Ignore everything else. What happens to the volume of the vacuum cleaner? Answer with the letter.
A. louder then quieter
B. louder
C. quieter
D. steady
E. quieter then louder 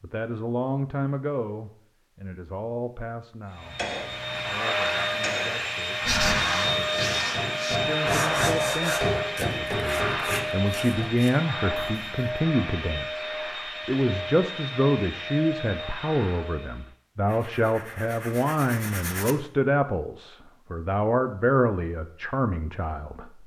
C.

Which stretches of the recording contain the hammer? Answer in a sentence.
The hammer can be heard from 3.5 to 11.2 s.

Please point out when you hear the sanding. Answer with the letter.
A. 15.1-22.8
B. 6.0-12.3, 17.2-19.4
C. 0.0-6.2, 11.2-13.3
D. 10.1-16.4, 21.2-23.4
B.